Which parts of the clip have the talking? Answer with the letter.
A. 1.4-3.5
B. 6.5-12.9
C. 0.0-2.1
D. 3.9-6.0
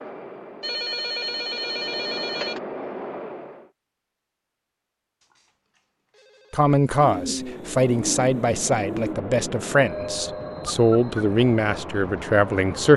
B.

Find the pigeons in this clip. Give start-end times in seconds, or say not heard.
7.0-9.2.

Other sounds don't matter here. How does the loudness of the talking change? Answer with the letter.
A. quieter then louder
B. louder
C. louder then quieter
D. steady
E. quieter
D.